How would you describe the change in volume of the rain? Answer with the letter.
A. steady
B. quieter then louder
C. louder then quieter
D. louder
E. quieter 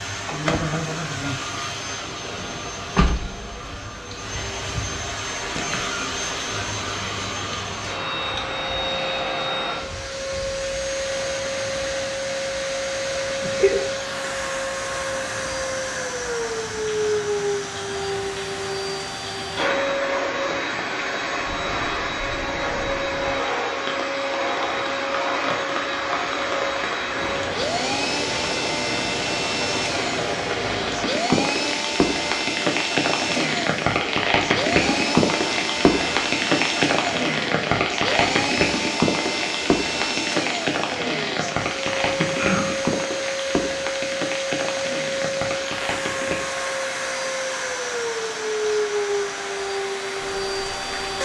C.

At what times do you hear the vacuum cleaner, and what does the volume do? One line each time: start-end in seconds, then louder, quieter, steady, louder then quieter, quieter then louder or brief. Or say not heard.
0.0-51.2 steady.